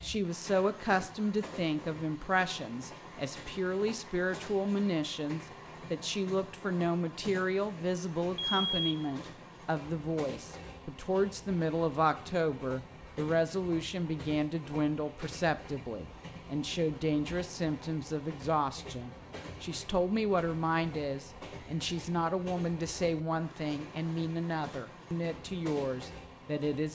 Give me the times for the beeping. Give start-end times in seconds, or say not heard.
8.3-8.9.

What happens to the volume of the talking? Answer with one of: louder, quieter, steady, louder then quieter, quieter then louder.
steady.